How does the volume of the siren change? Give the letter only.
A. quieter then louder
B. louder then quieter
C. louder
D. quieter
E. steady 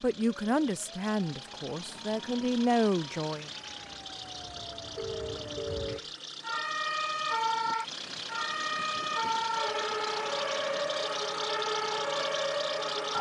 C.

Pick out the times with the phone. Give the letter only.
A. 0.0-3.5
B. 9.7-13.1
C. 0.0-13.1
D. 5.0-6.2
D.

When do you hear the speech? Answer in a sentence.
You can hear the speech from 0.0 to 3.5 s.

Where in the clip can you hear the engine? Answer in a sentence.
The engine can be heard from 0.0 to 13.1 s.